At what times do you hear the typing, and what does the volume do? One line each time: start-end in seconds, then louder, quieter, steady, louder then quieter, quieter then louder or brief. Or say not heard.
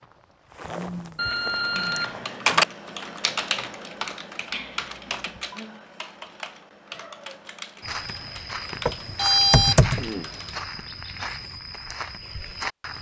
1.4-10.7 quieter.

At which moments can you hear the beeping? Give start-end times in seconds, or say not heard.
1.1-2.6, 4.5-5.6, 8.8-10.1.